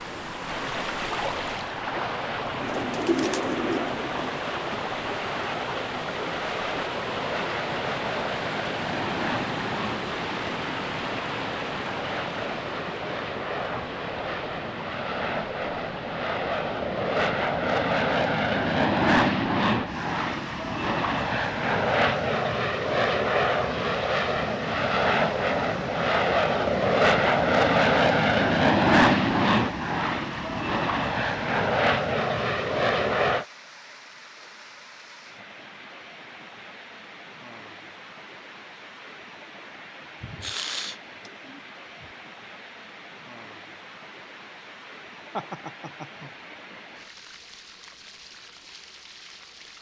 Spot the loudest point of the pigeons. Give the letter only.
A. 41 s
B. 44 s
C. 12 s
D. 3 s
D.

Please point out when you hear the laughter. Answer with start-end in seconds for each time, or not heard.
45.4-46.3.